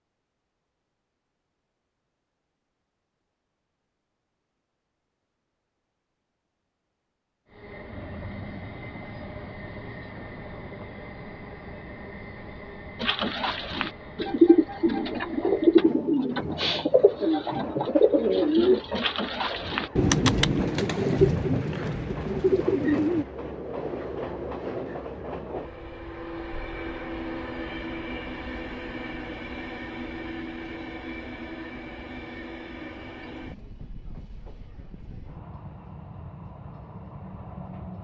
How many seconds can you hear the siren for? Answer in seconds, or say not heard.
not heard.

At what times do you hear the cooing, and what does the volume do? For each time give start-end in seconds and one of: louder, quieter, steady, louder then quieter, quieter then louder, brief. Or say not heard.
13.0-23.2 steady.